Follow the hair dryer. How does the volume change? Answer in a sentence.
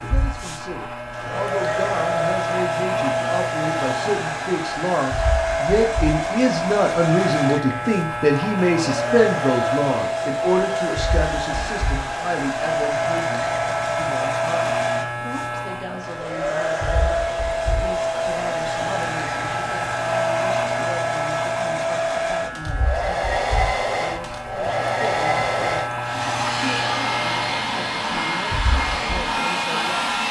The volume of the hair dryer stays about the same.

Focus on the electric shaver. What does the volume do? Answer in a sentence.
The volume of the electric shaver stays about the same.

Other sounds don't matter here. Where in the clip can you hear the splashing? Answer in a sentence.
The splashing can't be heard in this clip.